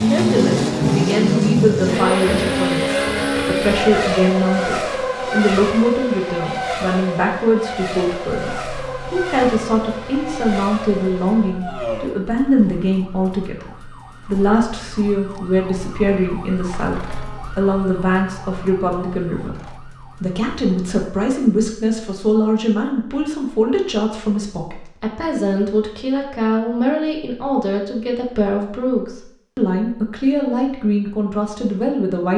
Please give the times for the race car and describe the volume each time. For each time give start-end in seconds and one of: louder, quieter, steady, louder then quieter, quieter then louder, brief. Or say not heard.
0.0-12.2 quieter.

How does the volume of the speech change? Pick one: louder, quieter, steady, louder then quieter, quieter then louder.
steady.